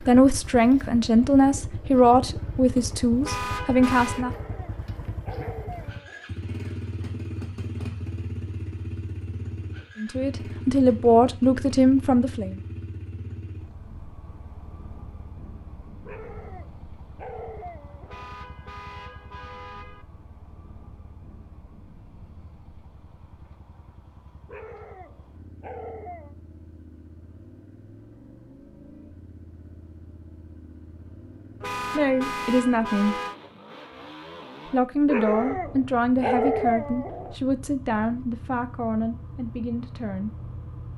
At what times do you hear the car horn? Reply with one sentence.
The car horn can be heard from 3.2 to 4.2 s, from 18.1 to 20.1 s and from 31.6 to 33.4 s.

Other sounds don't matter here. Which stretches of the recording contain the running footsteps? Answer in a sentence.
You can't hear the running footsteps here.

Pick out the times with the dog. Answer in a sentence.
You can hear the dog from 4.1 to 6.3 s, from 16.1 to 18.4 s, from 24.4 to 26.4 s and from 35.0 to 37.4 s.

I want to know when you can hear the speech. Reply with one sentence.
The speech can be heard from 0.0 to 4.3 s, from 9.9 to 12.6 s, from 31.9 to 33.1 s and from 34.7 to 40.4 s.